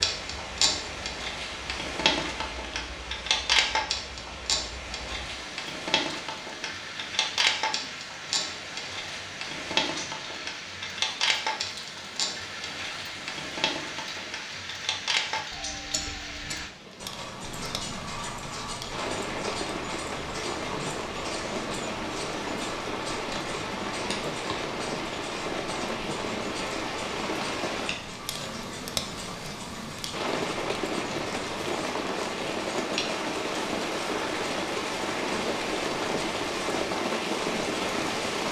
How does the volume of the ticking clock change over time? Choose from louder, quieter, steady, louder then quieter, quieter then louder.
quieter.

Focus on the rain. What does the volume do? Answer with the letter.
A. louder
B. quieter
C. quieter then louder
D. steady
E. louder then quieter
A.